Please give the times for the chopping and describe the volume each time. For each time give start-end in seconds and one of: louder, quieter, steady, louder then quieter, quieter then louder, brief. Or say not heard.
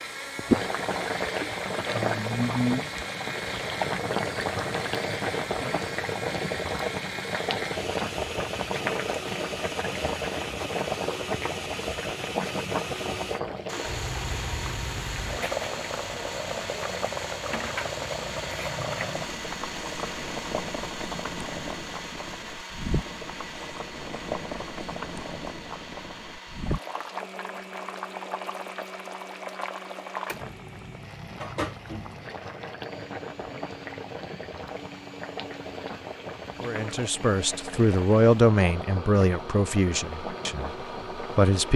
not heard.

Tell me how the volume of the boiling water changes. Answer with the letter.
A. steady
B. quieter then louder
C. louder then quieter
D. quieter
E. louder
D.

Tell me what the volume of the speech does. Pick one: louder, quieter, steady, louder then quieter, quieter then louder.
louder then quieter.